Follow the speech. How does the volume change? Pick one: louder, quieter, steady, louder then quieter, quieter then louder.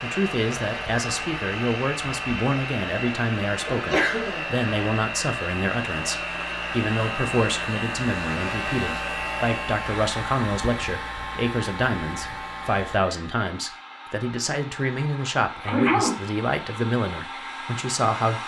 steady.